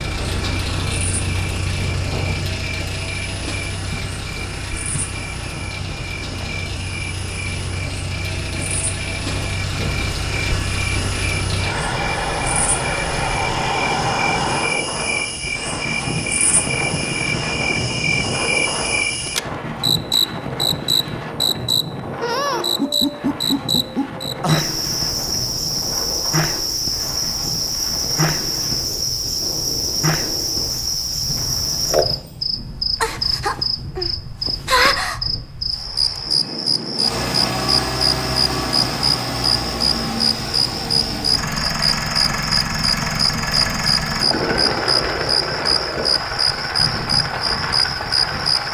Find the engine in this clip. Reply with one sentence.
The engine can be heard from 0.0 to 14.8 s and from 37.0 to 48.7 s.